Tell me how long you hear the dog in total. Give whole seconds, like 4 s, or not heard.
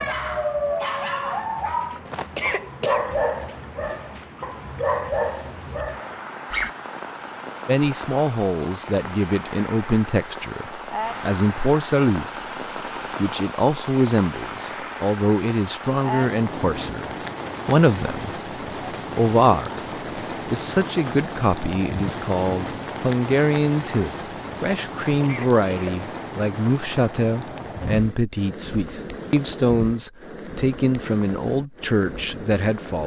7 s.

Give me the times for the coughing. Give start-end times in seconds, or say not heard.
2.0-3.0, 25.1-26.0.